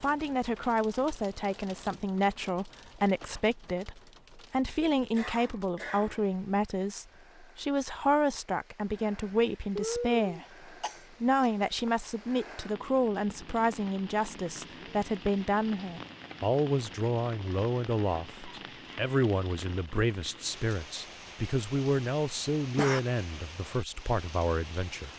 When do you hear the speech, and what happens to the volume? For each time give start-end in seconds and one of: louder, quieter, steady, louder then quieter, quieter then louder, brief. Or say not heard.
0.0-25.1 steady.